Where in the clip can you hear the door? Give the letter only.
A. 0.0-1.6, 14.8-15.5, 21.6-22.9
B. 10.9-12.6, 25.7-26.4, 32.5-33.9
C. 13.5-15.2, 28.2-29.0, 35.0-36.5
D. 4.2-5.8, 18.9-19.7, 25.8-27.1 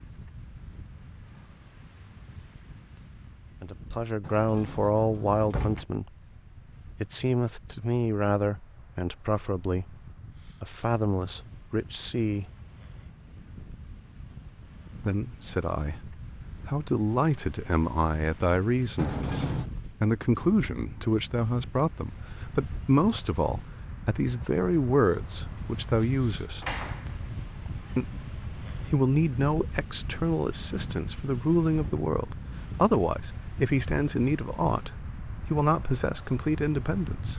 D.